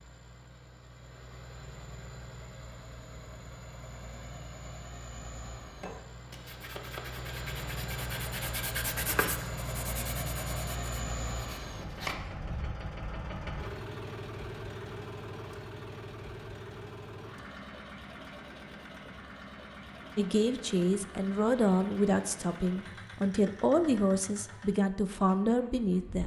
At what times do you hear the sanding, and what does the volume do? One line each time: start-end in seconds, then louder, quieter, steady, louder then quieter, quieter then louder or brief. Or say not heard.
5.8-12.2 louder then quieter.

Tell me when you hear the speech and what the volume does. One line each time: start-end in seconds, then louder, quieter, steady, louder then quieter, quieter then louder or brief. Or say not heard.
20.1-26.2 steady.